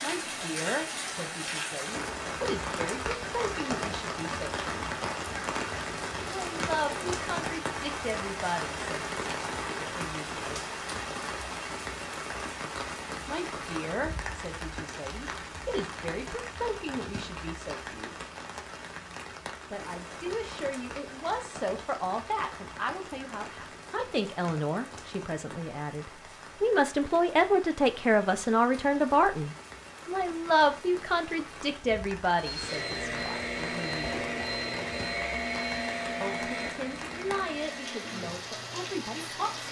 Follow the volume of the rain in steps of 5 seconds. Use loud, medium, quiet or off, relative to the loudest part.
loud, loud, loud, medium, medium, quiet, medium, medium.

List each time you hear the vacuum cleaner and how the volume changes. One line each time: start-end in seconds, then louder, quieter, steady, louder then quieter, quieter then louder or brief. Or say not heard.
32.4-39.6 quieter.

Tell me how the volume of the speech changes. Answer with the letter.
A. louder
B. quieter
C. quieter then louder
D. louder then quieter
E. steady
D.